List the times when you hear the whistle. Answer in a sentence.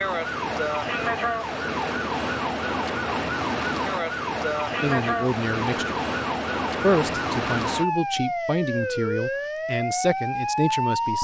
You can't hear the whistle here.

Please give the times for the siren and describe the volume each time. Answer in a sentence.
You can hear the siren from 0.0 to 11.1 s, at a steady volume.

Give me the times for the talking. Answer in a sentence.
The talking can be heard from 4.8 to 6.0 s and from 6.8 to 11.1 s.